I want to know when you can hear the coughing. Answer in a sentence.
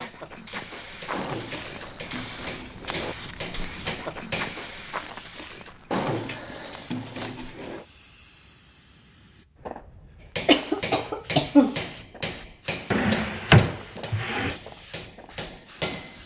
You can hear the coughing from 10.4 to 11.8 s.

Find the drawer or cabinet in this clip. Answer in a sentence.
The drawer or cabinet can be heard from 1.1 to 3.1 s, from 5.9 to 7.8 s and from 12.9 to 14.6 s.